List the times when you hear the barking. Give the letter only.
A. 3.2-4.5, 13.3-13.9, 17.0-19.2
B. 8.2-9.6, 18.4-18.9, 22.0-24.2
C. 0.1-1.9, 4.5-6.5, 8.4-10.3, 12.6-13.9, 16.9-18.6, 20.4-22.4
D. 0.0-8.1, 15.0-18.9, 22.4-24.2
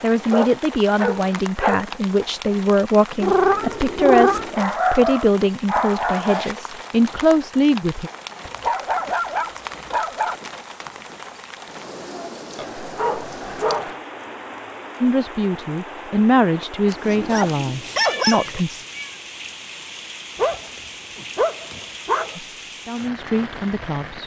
C.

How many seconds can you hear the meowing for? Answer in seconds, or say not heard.
4 s.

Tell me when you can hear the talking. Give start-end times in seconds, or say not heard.
0.0-8.1, 15.0-18.9, 22.4-24.2.